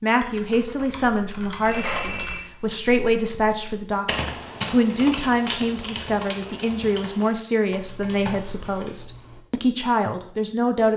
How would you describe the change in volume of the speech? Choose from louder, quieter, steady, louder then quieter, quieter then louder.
steady.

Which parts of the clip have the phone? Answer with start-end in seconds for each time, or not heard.
1.6-2.5.